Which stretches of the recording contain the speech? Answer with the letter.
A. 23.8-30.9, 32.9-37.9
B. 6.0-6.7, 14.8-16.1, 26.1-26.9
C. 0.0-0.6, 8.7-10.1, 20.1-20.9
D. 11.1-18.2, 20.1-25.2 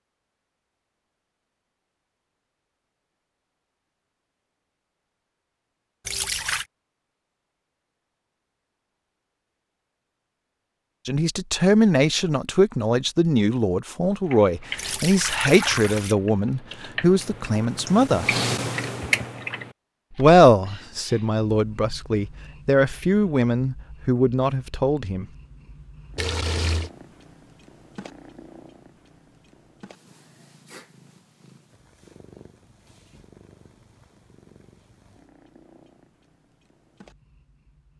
D.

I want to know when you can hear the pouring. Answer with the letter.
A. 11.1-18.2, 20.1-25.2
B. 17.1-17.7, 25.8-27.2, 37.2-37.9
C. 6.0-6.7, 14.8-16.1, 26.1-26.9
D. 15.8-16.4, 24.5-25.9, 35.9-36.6
C.